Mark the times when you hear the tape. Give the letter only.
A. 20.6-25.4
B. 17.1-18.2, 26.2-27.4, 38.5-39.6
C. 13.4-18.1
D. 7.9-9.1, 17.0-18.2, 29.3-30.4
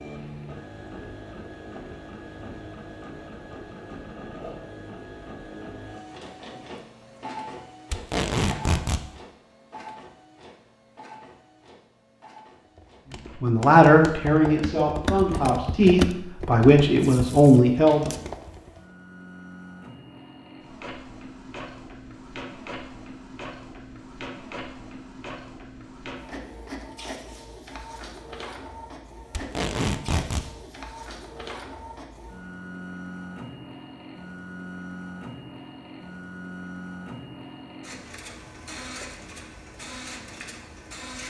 D.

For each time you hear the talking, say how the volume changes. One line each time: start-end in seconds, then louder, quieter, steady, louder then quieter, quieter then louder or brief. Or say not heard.
13.4-18.1 quieter then louder.